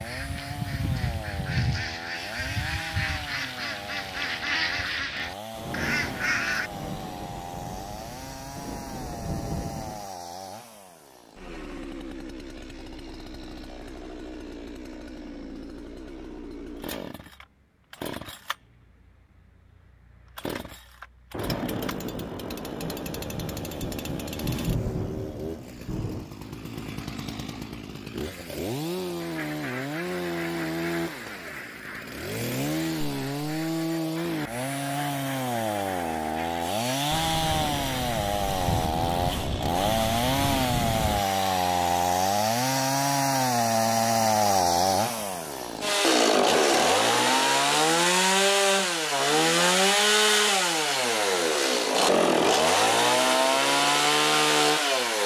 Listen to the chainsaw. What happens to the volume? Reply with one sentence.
The volume of the chainsaw goes up.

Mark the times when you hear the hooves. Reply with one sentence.
You can't hear the hooves here.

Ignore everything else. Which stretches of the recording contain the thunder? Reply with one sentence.
You can hear the thunder from 5.5 to 10.1 s, from 21.3 to 26.2 s and from 37.1 to 41.2 s.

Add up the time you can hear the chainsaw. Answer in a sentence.
The chainsaw can be heard for 55 seconds in total.